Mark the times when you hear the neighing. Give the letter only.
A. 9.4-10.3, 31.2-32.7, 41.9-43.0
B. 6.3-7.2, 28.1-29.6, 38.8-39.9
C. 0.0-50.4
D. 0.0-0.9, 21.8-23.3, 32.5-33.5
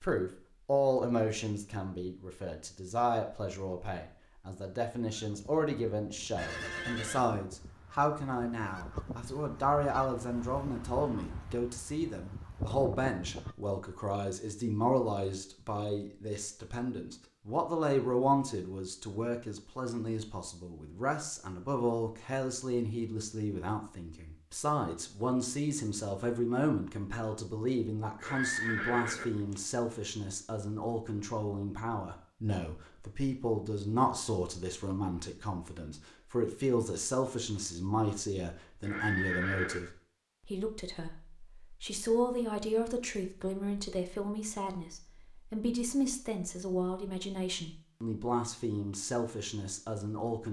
B.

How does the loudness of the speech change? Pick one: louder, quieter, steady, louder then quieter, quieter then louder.
steady.